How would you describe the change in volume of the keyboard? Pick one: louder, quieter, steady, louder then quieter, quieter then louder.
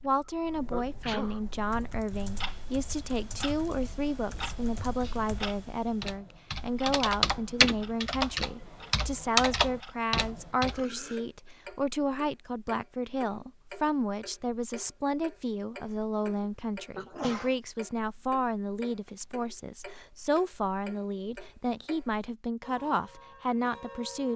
louder.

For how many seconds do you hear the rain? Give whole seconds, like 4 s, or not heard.
not heard.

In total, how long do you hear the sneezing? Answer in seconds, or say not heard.
3 s.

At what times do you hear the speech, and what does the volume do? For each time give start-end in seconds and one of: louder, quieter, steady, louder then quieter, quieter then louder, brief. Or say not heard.
0.0-24.3 steady.